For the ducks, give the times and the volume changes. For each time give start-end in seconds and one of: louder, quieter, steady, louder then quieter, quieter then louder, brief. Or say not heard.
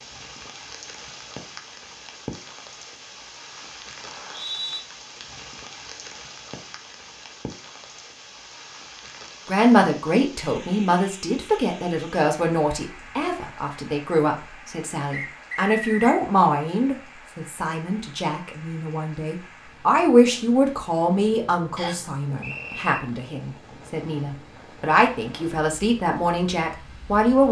not heard.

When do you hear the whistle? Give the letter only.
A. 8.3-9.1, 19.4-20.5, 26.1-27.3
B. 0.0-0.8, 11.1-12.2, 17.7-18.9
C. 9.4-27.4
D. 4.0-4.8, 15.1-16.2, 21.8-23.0
D.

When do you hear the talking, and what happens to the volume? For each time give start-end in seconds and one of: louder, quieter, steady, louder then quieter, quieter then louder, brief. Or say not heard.
9.4-27.4 steady.